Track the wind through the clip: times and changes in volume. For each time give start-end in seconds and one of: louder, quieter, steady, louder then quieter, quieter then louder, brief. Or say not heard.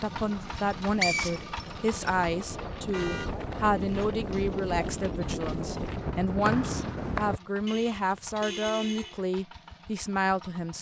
0.0-7.4 louder.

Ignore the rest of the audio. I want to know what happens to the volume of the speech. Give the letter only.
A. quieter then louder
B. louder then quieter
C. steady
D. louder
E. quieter
C.